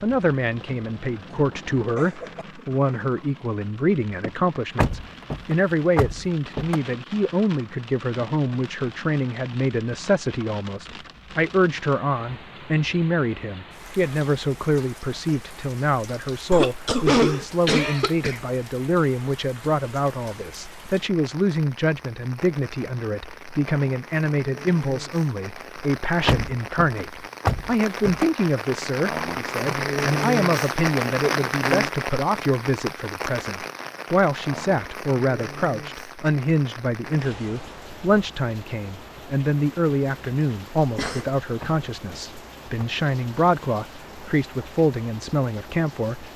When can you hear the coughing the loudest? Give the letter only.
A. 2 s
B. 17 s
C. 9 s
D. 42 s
B.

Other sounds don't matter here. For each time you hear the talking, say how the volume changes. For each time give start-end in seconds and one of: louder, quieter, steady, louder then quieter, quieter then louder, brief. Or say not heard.
0.0-46.3 steady.